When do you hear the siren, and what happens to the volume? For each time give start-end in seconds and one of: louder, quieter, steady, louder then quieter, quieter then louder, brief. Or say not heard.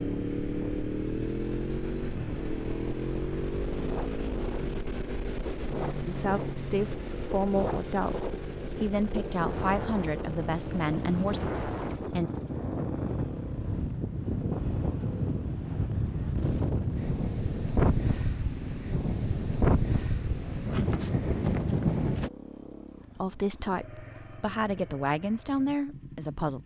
not heard.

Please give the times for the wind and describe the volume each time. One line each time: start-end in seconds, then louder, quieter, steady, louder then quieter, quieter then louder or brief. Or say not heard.
0.0-22.3 louder.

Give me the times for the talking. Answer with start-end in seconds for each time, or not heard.
6.0-12.3, 23.1-26.6.